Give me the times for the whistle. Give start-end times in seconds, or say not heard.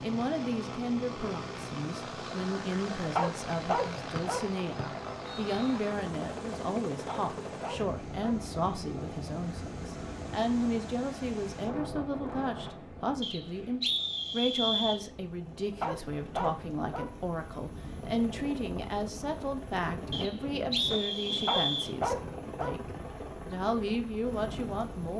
4.2-5.8, 13.2-15.0, 20.1-21.9.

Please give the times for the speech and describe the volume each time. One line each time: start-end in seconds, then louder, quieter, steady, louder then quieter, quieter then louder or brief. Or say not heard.
0.0-25.1 steady.